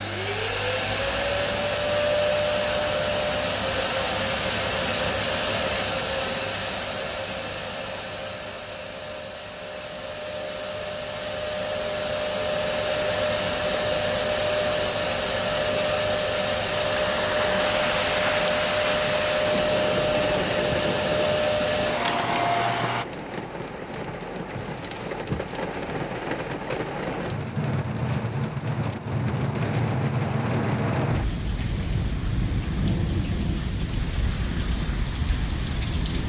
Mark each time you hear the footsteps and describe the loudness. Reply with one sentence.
The footsteps can't be heard in this clip.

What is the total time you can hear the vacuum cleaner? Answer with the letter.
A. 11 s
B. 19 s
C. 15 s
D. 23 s
D.